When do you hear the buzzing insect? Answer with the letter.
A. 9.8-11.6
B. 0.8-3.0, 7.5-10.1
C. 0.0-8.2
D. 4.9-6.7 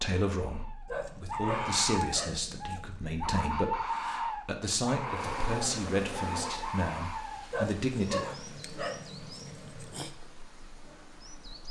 D.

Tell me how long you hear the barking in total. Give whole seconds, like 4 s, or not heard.
5 s.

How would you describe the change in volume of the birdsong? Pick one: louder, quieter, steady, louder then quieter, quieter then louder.
quieter.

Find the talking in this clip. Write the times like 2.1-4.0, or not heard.
0.0-8.2.